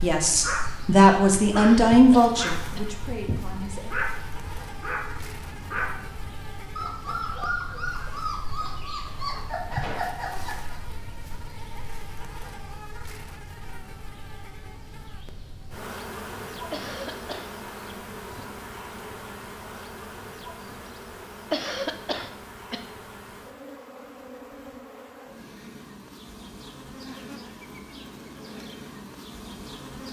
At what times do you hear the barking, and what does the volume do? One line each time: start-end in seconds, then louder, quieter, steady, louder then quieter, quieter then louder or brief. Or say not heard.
0.2-10.8 steady.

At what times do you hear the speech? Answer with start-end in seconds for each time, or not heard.
0.0-4.0.